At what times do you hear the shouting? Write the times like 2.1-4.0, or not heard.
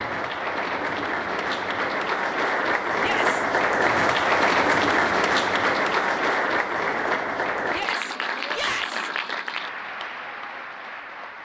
3.0-3.5, 7.7-9.1.